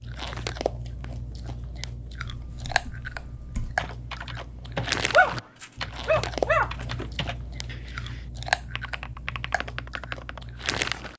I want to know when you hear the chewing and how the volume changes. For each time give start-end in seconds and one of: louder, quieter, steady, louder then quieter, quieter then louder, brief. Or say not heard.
0.0-11.1 louder then quieter.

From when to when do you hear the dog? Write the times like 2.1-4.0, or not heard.
5.1-7.0.